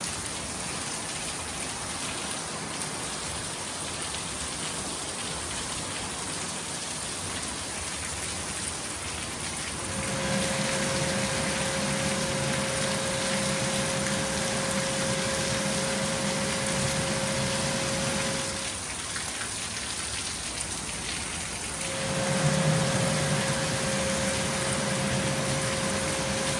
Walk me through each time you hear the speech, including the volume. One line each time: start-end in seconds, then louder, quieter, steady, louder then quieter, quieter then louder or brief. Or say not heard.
not heard.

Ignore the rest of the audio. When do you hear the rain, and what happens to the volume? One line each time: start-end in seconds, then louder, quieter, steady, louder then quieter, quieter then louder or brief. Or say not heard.
0.0-26.5 steady.